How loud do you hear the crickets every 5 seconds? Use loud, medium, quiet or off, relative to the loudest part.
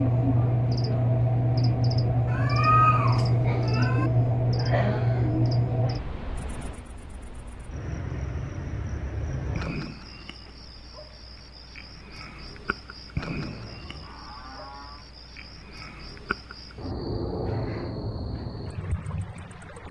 loud, medium, quiet, quiet.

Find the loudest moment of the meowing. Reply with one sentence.
The volume of the meowing peaks at 3 seconds.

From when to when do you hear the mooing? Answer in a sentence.
The mooing can be heard from 13.4 to 15.1 s.